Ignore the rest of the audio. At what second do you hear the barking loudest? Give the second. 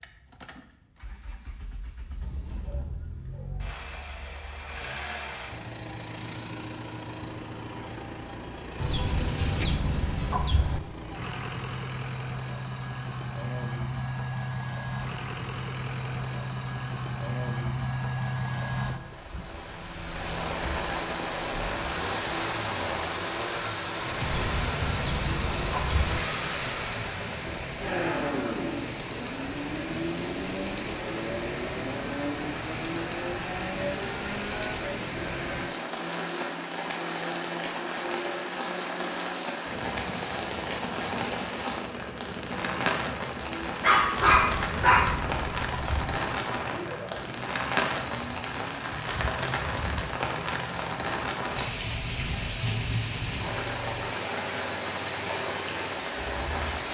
44 s.